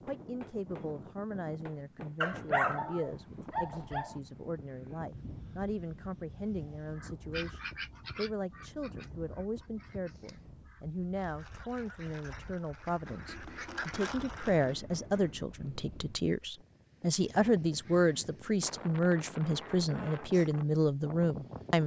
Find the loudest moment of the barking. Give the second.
3 s.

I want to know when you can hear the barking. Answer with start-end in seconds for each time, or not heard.
2.2-4.2.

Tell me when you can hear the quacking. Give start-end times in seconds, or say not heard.
7.0-14.8.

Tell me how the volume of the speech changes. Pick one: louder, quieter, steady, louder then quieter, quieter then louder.
louder.